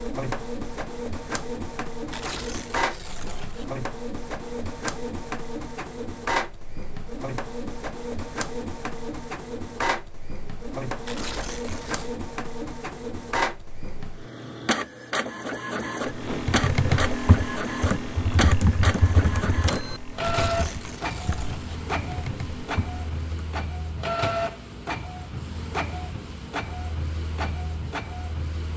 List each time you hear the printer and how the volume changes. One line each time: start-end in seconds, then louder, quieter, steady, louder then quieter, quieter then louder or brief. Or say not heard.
0.0-28.7 steady.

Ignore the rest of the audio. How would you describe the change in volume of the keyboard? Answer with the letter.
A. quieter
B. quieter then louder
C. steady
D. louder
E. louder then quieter
A.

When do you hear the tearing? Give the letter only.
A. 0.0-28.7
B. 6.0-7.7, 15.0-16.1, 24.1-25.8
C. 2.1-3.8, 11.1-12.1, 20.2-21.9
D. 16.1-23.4
C.